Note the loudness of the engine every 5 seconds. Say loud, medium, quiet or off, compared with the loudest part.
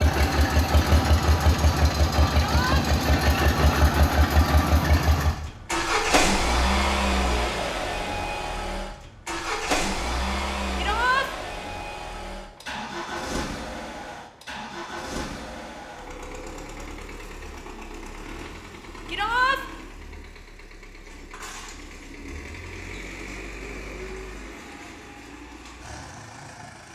loud, loud, medium, quiet, quiet, quiet.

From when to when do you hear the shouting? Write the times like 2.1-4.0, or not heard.
2.3-2.9, 10.8-11.3, 19.1-19.6.